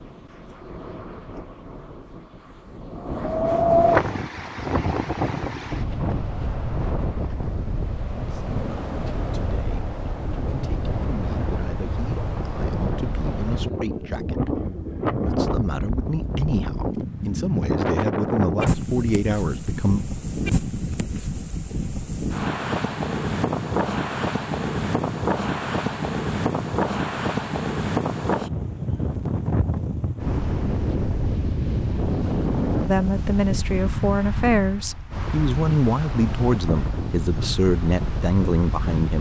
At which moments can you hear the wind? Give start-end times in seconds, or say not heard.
0.0-39.1.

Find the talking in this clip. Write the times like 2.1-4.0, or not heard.
8.2-20.1, 32.9-39.1.